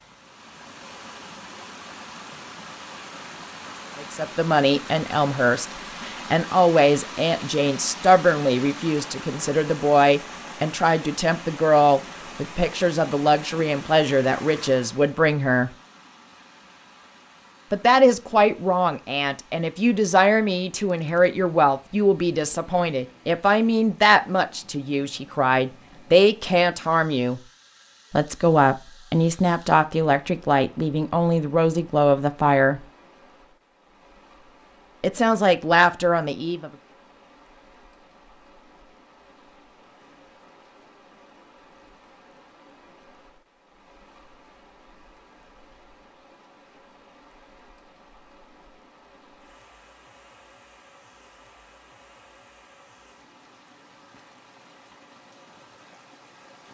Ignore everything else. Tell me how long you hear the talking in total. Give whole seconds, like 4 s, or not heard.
28 s.